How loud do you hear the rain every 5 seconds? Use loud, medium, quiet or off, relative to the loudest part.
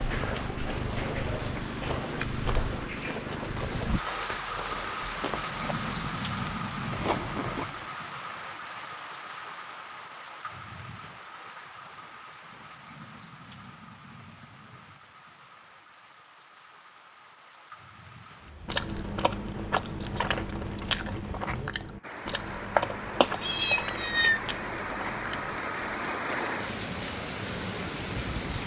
loud, loud, quiet, quiet, medium, loud.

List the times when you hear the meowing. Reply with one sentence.
You can hear the meowing from 22.8 to 24.4 s.